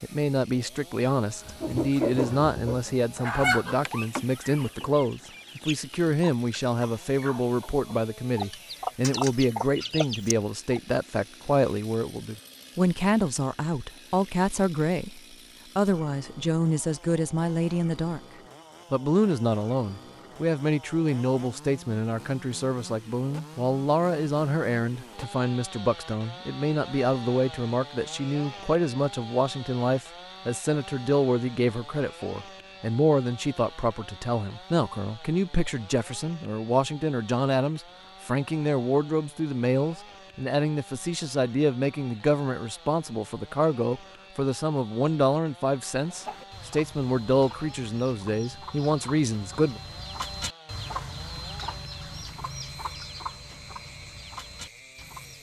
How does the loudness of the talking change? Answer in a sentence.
The volume of the talking stays about the same.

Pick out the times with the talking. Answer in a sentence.
The talking can be heard from 0.0 to 18.2 s and from 18.9 to 49.8 s.